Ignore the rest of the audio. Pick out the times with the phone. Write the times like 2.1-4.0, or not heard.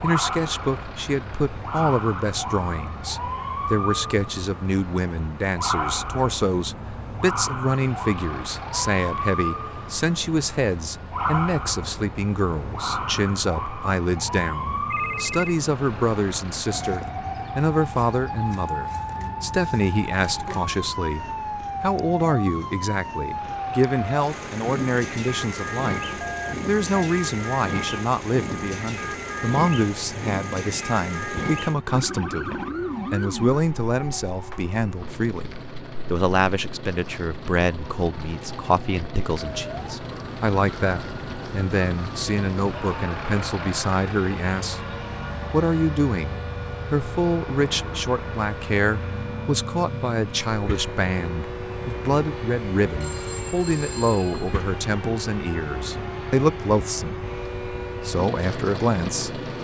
14.9-15.6, 26.2-27.1, 53.0-54.6.